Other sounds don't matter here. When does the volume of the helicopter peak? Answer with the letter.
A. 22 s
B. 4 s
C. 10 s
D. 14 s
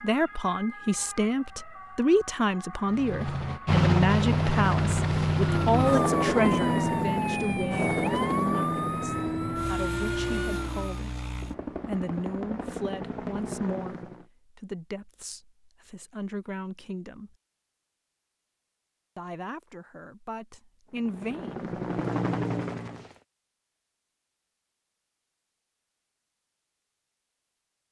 B.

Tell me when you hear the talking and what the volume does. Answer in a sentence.
You can hear the talking from 0.0 to 17.3 s, getting quieter; and briefly from 19.1 to 21.7 s.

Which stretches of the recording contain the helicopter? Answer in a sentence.
The helicopter can be heard from 2.9 to 14.2 s and from 20.9 to 23.2 s.